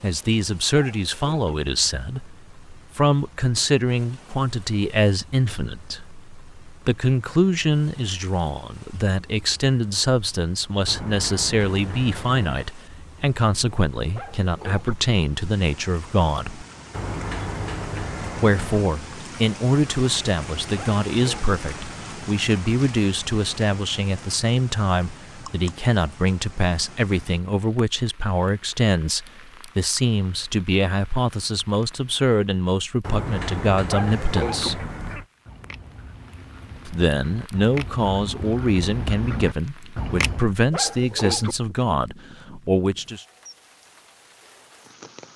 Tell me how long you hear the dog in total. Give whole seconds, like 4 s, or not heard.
4 s.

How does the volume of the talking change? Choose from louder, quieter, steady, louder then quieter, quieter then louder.
steady.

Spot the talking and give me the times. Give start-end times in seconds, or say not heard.
0.0-16.6, 18.4-34.9, 36.9-43.2.